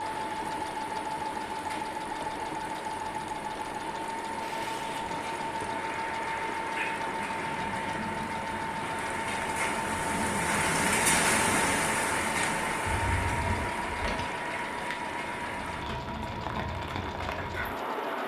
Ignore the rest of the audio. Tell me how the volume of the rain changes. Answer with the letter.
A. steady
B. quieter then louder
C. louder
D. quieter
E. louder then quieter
E.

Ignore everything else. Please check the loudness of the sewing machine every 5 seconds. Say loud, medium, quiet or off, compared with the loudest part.
loud, loud, loud, medium.